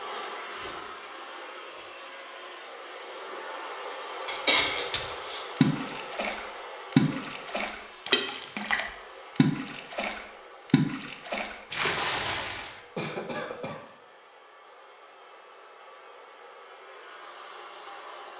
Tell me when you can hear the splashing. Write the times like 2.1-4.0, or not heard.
4.5-12.8.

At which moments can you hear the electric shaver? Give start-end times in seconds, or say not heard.
not heard.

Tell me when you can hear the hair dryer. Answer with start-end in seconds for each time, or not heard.
0.0-18.3.